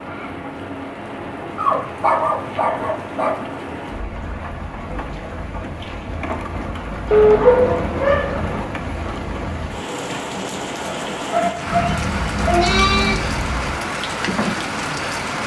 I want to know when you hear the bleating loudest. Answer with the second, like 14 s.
13 s.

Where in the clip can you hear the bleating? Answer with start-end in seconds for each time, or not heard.
11.7-13.7.